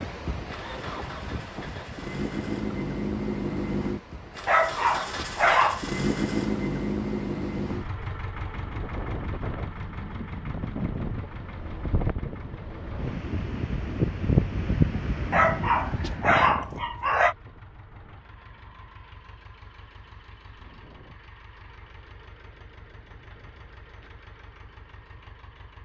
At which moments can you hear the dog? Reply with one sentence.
The dog can be heard from 4.5 to 5.8 s and from 15.3 to 17.4 s.